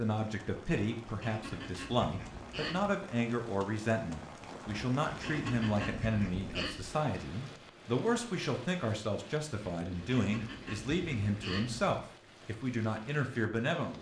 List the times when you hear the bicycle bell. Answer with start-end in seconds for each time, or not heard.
not heard.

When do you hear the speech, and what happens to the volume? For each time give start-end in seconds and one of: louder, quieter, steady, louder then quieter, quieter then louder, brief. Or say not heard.
0.0-13.9 steady.